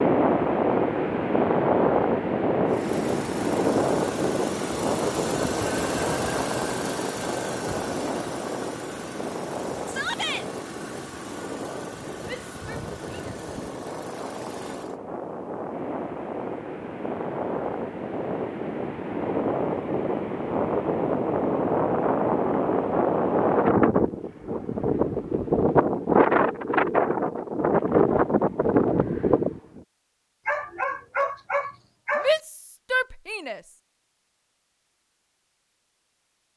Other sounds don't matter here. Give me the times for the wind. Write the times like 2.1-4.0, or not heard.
0.0-29.8.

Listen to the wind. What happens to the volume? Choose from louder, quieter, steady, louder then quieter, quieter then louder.
quieter then louder.